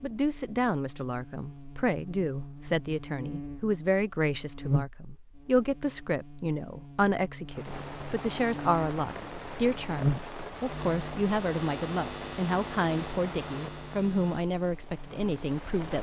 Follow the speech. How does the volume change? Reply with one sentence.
The loudness of the speech stays about the same.